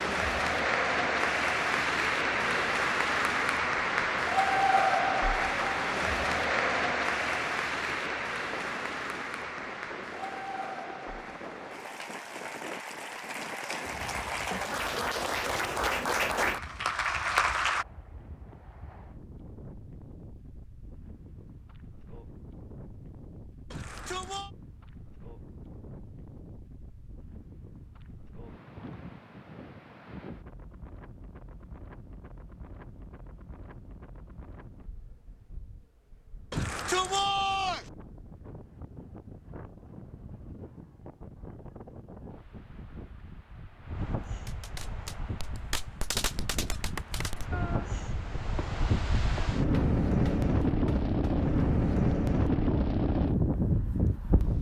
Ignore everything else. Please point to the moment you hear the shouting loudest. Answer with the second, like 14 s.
37 s.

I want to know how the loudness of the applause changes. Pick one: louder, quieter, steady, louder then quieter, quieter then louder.
quieter then louder.